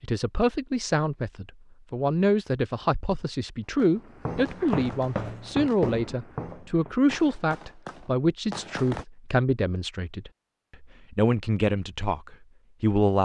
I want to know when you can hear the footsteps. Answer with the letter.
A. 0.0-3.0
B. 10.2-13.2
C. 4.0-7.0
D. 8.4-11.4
C.